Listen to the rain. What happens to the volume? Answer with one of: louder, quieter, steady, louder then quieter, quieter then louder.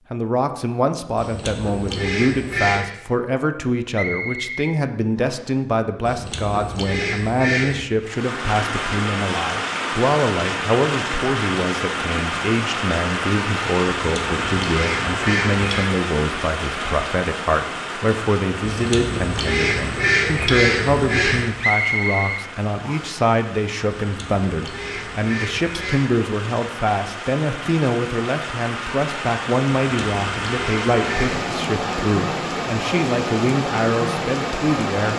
quieter then louder.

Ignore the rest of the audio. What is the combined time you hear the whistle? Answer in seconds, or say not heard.
3 s.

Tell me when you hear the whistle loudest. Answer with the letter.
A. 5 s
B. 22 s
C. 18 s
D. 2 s
B.